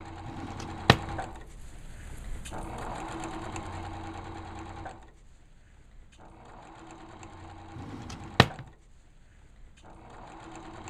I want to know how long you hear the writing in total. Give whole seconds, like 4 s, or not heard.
not heard.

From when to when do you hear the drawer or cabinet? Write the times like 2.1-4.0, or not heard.
0.2-1.1, 7.8-8.7.